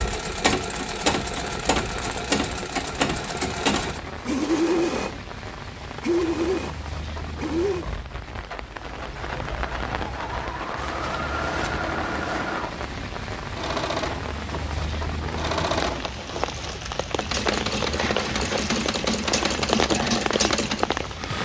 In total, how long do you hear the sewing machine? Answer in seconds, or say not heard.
21 s.